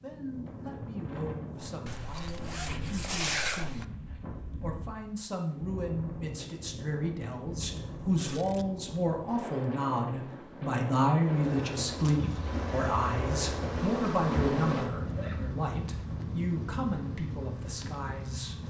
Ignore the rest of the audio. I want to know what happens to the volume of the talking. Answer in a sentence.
The volume of the talking goes up, then down.